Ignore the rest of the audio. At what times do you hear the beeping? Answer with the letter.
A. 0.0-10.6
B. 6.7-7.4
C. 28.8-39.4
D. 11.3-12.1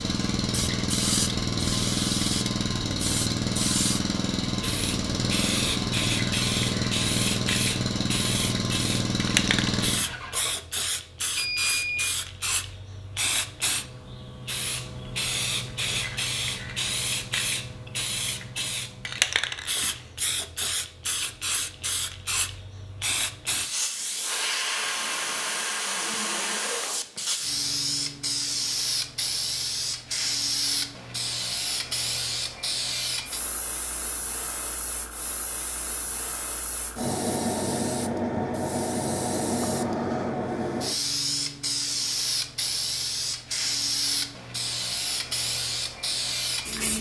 D.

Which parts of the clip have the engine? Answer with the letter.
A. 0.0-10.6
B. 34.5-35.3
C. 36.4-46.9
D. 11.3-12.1
A.